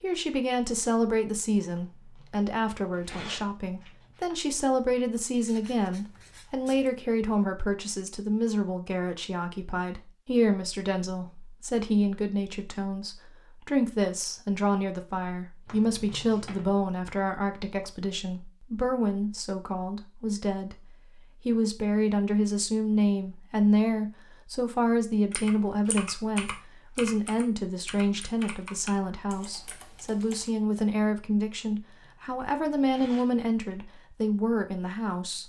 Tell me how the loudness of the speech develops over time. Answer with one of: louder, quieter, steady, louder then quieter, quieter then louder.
steady.